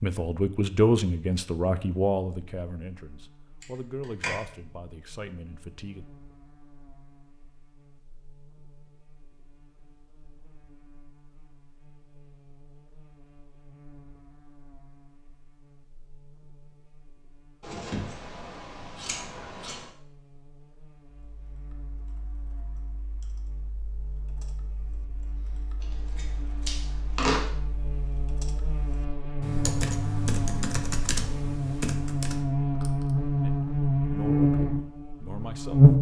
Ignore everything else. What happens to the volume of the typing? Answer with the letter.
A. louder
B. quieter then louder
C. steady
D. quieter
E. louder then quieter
A.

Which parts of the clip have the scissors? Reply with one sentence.
You can hear the scissors from 3.6 to 4.3 s, from 17.6 to 19.9 s and from 25.8 to 27.4 s.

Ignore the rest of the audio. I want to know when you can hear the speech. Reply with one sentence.
You can hear the speech from 0.0 to 6.0 s and from 33.4 to 35.9 s.